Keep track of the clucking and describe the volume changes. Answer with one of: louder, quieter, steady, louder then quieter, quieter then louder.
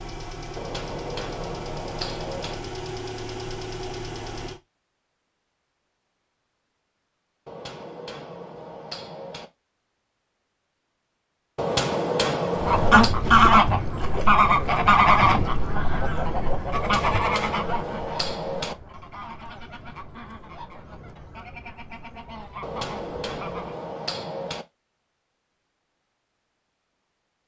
quieter.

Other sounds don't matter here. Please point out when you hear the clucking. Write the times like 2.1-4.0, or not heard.
12.6-23.9.